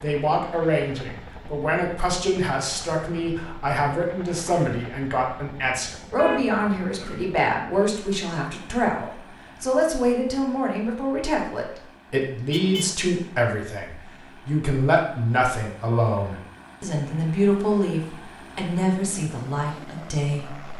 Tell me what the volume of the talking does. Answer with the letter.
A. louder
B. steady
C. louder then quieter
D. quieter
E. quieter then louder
B.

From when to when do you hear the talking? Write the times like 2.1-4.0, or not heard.
0.0-20.7.